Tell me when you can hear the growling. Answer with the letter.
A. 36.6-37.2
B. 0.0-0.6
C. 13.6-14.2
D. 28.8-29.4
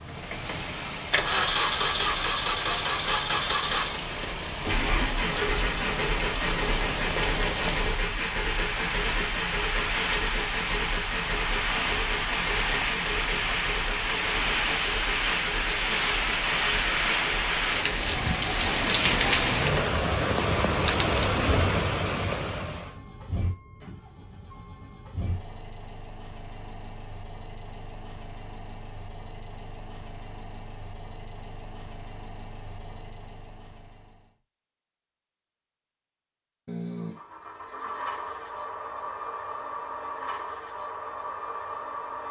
A.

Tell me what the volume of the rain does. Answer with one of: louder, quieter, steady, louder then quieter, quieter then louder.
louder.